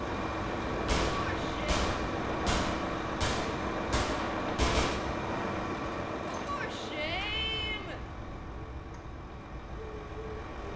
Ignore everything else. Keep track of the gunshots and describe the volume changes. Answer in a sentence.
The loudness of the gunshots stays about the same.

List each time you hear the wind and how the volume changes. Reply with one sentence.
You can hear the wind from 0.0 to 10.7 s, getting quieter.